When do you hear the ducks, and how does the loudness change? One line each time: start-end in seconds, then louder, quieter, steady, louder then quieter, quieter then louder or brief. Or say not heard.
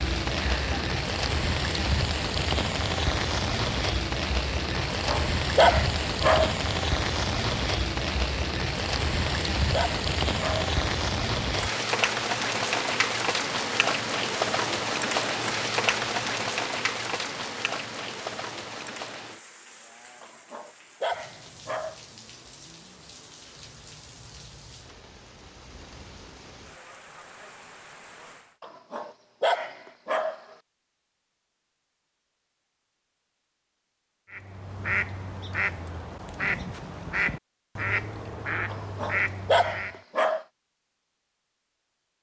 34.3-40.0 steady.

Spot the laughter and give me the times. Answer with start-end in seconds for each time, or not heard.
0.3-0.9.